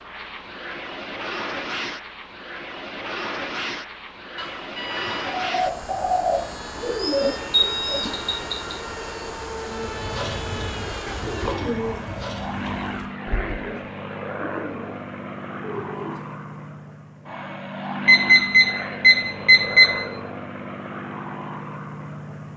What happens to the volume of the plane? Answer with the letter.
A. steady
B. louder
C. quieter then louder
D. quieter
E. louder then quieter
A.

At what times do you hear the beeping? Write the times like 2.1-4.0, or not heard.
4.3-5.5, 7.5-8.8, 18.1-20.1.